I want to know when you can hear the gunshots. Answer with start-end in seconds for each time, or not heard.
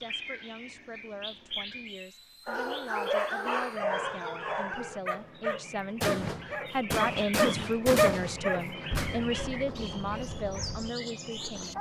6.0-9.2.